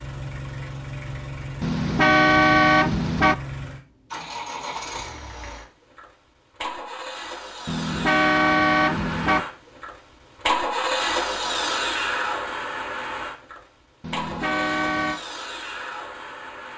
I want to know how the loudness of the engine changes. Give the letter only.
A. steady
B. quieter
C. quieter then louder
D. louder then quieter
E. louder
D.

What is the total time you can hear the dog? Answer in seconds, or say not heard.
not heard.